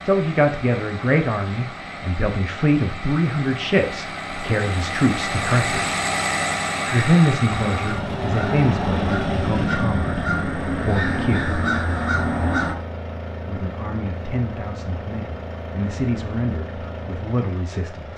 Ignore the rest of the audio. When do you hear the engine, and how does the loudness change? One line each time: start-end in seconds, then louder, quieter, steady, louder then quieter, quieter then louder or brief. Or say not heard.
0.0-18.1 louder then quieter.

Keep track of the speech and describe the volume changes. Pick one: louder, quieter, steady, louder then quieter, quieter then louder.
quieter.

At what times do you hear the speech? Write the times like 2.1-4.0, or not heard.
0.1-6.0, 6.8-11.6, 13.3-18.1.